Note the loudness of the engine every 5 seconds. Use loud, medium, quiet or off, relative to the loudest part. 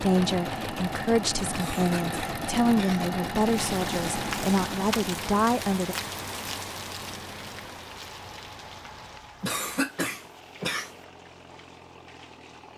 loud, quiet, quiet.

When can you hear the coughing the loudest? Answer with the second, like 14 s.
10 s.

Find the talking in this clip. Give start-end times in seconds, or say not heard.
0.0-6.0.